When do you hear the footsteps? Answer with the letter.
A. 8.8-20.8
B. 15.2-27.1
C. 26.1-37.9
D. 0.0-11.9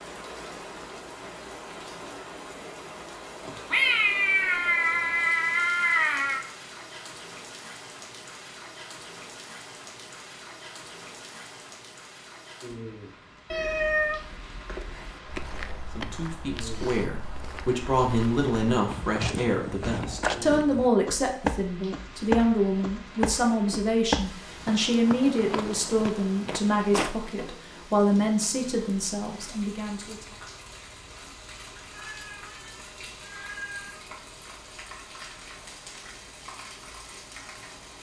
B.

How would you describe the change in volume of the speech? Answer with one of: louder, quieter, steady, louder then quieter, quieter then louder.
steady.